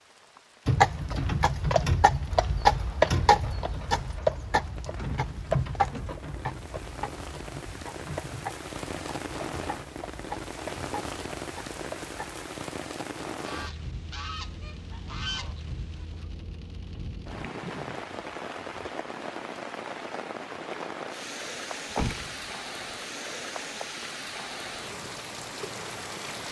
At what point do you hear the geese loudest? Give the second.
15 s.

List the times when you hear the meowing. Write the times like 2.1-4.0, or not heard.
not heard.